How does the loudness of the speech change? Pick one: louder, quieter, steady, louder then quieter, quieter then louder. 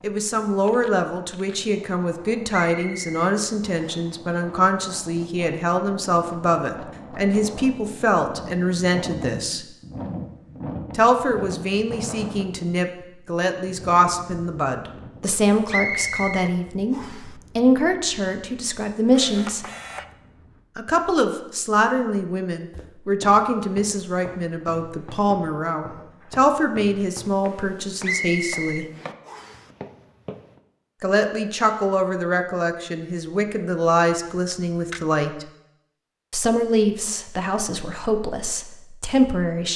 steady.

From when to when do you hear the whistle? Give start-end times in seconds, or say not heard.
2.7-4.1, 15.7-17.3, 28.0-29.6.